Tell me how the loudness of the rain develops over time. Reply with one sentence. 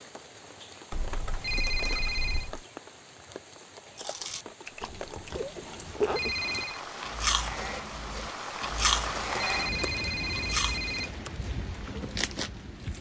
The volume of the rain goes up, then down.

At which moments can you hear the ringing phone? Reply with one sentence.
You can hear the ringing phone from 1.4 to 2.5 s, from 6.1 to 6.8 s and from 9.3 to 11.1 s.